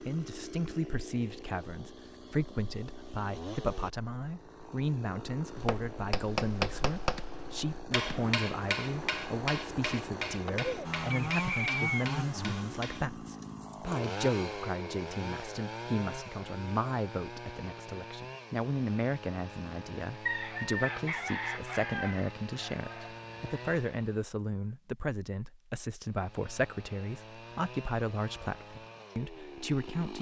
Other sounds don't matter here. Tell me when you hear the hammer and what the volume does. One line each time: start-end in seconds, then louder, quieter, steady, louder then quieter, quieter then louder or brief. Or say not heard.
5.5-13.1 quieter.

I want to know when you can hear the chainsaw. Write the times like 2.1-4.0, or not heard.
0.0-24.3, 26.1-30.1.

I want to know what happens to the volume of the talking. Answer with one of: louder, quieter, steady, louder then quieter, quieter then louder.
steady.